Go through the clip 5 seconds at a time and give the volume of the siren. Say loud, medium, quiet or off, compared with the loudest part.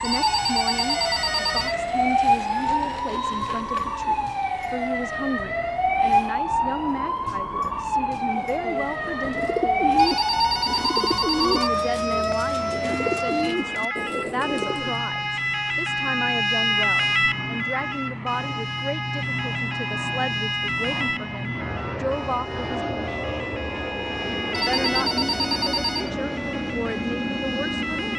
loud, loud, loud, loud, medium, medium.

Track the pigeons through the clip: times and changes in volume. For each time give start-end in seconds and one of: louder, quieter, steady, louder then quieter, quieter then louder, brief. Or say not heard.
8.2-14.9 steady.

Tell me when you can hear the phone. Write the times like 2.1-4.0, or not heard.
0.0-1.8, 9.9-11.7, 24.5-26.1.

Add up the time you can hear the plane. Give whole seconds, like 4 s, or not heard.
28 s.